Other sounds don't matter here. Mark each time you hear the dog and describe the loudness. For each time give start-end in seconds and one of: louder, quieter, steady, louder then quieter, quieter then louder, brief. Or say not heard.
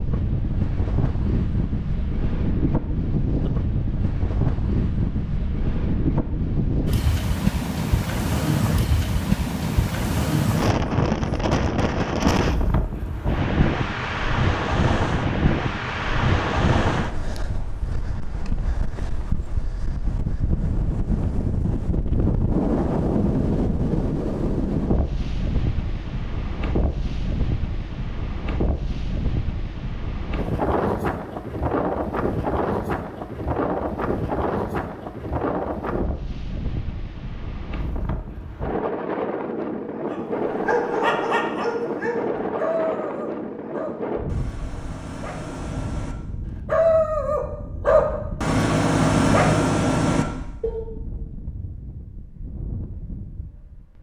40.1-50.9 quieter then louder.